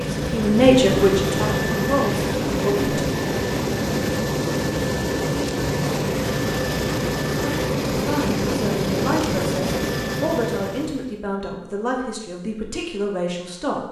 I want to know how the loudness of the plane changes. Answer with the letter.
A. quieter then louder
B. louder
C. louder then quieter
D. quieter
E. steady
E.